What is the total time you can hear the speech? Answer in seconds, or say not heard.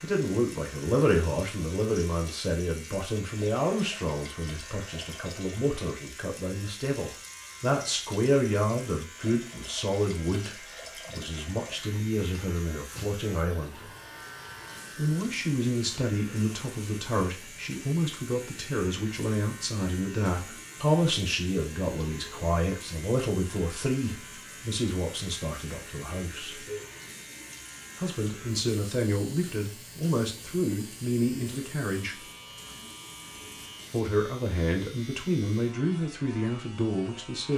33 s.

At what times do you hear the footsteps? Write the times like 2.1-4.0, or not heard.
not heard.